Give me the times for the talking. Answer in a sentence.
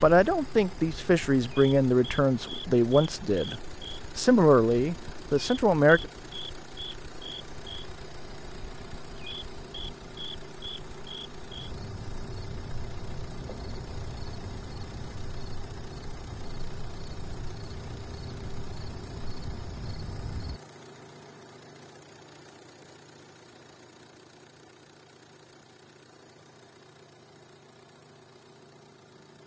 The talking can be heard from 0.0 to 6.0 s.